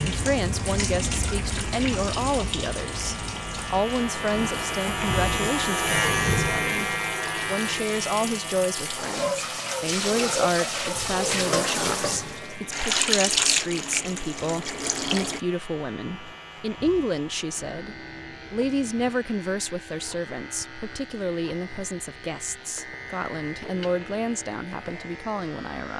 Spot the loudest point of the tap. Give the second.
13 s.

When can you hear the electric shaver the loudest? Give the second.
6 s.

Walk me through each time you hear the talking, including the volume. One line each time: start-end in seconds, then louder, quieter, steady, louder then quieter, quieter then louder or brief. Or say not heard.
0.1-25.9 steady.